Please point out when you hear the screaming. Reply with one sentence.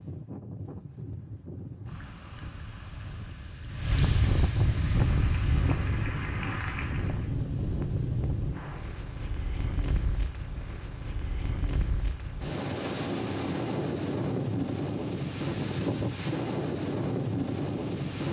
You can't hear the screaming here.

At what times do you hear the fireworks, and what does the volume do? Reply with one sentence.
You can't hear the fireworks here.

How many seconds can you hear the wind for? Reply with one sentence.
You can hear the wind for 18 seconds altogether.